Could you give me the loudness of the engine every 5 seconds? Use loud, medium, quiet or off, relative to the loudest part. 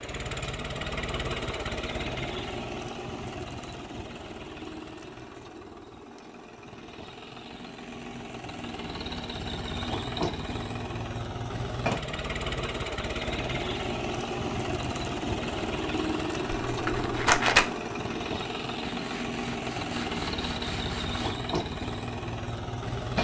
loud, medium, loud, loud, loud.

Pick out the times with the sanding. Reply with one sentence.
The sanding can be heard from 18.9 to 21.4 s.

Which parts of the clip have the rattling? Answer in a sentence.
You can hear the rattling from 16.5 to 17.7 s.